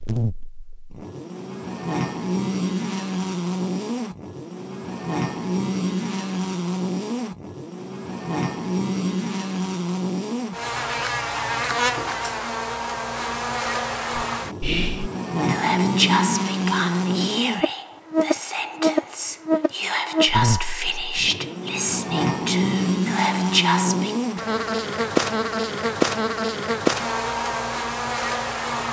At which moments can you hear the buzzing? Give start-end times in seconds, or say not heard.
0.0-28.8.